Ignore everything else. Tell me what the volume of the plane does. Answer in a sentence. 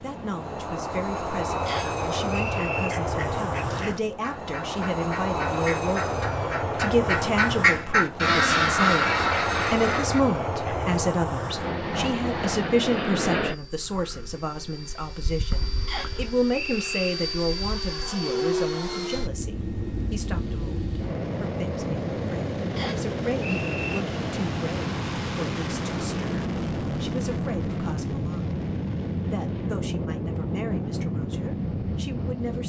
The loudness of the plane stays about the same.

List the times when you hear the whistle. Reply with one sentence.
The whistle can be heard from 1.6 to 2.9 s, from 15.8 to 17.1 s and from 22.8 to 24.0 s.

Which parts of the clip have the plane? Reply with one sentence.
You can hear the plane from 0.0 to 32.6 s.